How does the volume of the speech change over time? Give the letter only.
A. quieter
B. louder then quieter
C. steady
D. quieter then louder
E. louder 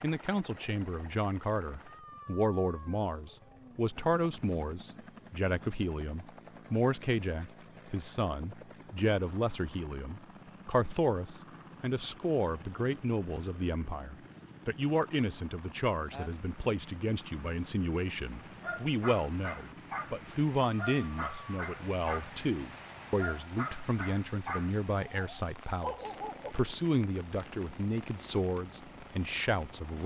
C.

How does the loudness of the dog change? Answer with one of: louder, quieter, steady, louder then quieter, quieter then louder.
steady.